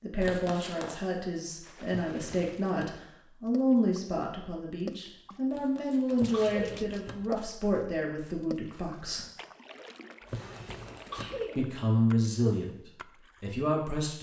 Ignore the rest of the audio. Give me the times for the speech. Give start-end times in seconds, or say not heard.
0.0-9.2, 11.6-14.1.